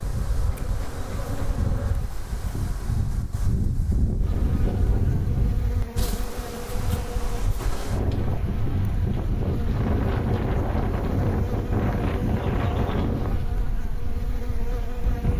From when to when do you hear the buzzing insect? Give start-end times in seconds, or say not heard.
0.0-2.1, 4.2-15.3.